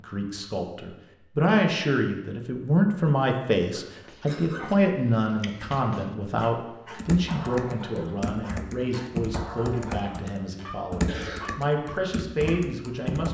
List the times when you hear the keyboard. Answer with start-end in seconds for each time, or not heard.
7.0-13.2.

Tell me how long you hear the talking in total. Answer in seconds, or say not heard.
13 s.